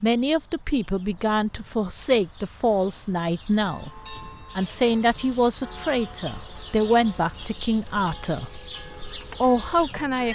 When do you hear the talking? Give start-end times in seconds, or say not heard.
0.0-8.6, 9.4-10.3.